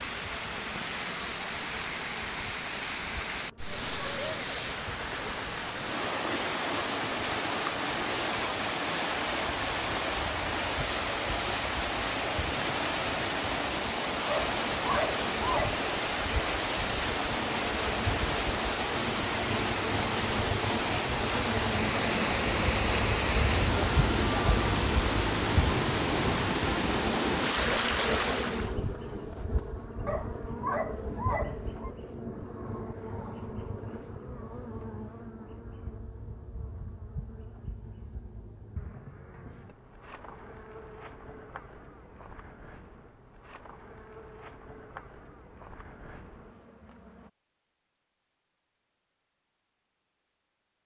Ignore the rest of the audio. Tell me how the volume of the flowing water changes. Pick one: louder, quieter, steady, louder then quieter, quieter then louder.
steady.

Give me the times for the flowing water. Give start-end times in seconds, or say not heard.
0.0-28.8.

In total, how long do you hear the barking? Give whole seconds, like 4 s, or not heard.
3 s.